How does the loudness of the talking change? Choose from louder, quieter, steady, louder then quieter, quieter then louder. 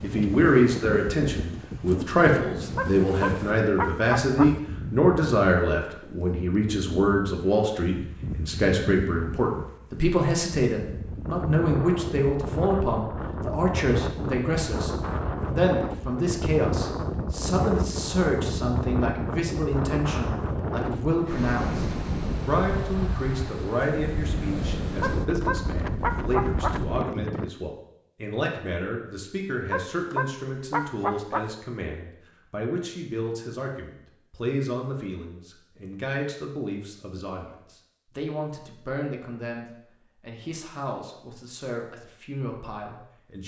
quieter.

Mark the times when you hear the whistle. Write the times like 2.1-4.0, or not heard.
not heard.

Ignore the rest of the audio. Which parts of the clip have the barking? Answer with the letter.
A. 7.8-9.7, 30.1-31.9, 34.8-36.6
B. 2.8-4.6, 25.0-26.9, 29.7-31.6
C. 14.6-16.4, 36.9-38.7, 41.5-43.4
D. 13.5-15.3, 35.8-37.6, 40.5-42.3
B.